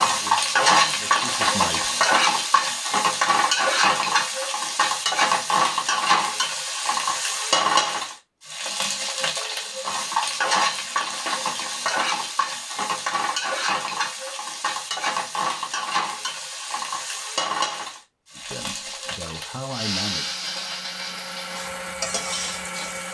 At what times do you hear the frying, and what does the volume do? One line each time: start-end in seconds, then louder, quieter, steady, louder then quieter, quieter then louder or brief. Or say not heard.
0.0-23.0 quieter.